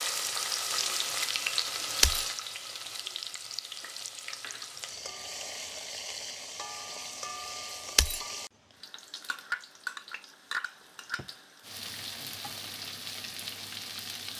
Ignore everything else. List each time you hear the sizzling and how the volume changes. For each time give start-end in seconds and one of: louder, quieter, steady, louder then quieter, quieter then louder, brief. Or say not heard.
0.0-14.3 quieter.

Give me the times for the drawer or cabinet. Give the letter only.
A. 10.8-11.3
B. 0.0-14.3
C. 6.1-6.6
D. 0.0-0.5
A.